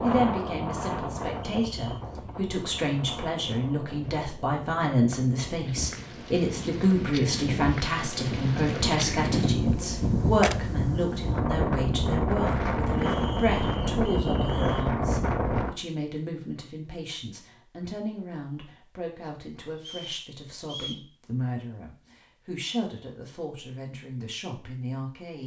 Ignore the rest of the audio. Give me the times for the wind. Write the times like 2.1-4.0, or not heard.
0.0-15.8.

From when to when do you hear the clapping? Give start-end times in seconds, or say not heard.
not heard.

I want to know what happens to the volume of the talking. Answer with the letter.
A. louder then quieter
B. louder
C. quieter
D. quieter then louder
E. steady
C.